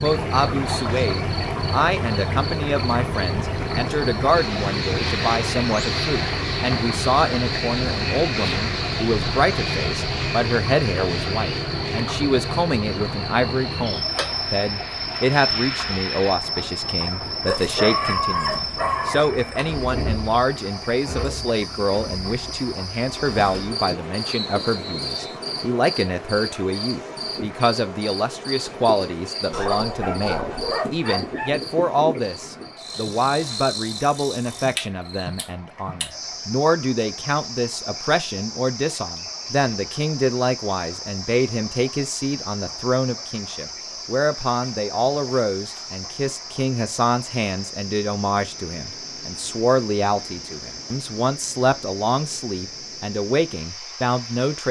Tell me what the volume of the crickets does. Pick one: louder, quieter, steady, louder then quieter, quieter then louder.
quieter.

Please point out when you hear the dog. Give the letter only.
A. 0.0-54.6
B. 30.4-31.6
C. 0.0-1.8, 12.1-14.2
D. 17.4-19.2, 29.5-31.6
D.